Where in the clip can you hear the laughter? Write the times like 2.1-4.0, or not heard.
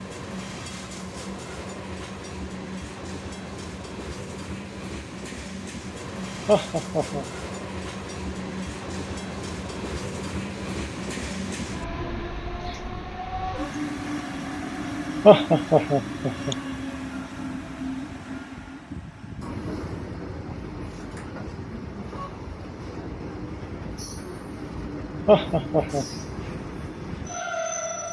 6.5-7.2, 15.2-16.6, 25.2-26.1.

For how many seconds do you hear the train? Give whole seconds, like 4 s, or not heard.
28 s.